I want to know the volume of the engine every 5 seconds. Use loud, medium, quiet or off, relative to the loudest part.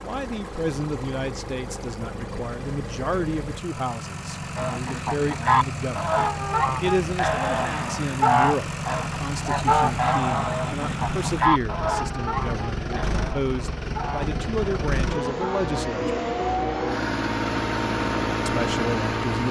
medium, medium, medium, loud.